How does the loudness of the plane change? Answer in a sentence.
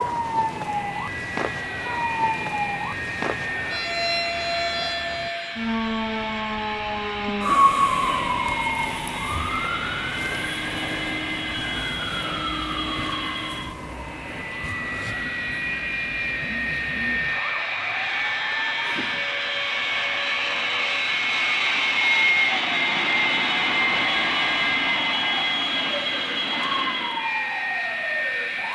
The loudness of the plane goes up.